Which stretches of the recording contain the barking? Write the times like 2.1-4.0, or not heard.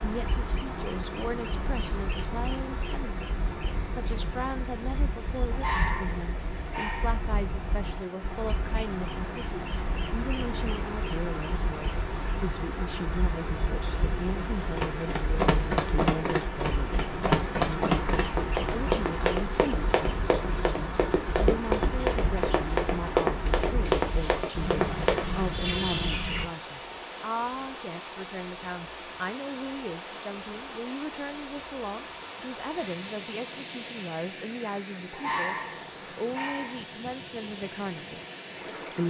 5.5-7.2, 35.1-37.0.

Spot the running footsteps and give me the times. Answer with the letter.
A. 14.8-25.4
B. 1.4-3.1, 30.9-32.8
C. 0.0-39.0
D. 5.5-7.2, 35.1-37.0
A.